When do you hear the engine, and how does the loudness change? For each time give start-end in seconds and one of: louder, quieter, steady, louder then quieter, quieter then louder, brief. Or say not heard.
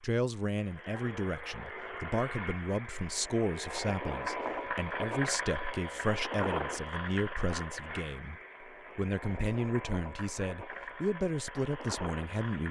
0.0-12.6 louder then quieter.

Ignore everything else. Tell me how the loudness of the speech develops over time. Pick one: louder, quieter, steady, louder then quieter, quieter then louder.
steady.